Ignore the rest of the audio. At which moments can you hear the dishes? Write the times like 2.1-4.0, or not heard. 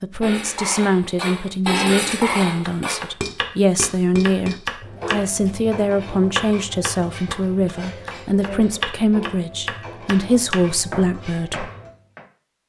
0.2-11.9.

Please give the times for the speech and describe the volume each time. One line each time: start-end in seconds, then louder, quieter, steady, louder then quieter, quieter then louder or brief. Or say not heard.
0.0-11.7 steady.